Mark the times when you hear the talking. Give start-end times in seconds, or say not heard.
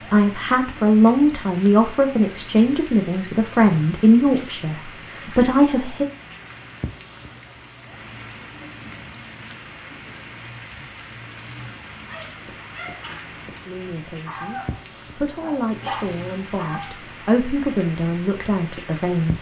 0.1-6.0, 13.7-19.3.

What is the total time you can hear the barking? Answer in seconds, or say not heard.
5 s.